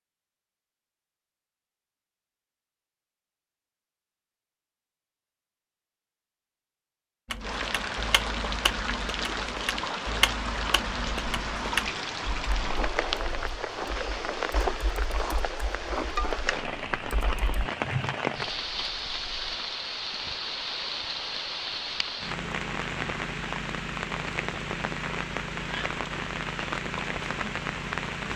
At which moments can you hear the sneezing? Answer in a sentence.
You can't hear the sneezing here.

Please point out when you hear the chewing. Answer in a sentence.
You can't hear the chewing here.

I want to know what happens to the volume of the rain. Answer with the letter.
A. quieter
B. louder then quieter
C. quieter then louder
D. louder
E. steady
E.